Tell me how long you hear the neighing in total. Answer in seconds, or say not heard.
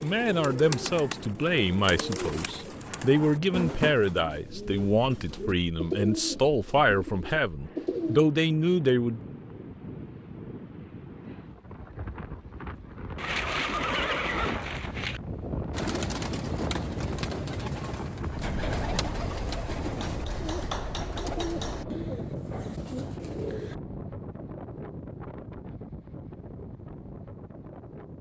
2 s.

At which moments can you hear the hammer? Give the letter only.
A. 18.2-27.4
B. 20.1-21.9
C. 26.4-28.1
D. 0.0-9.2
B.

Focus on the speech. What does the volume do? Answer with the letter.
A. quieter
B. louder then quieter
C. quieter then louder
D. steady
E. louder
D.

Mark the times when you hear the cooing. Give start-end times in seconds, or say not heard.
0.0-8.2, 15.7-23.8.